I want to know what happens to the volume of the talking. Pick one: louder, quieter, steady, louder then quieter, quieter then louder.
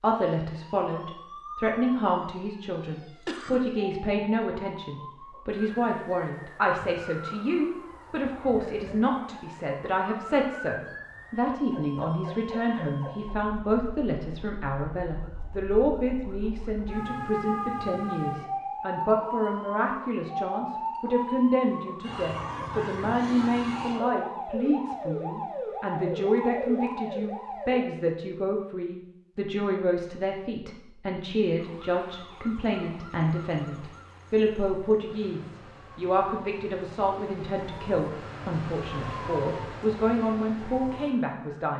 steady.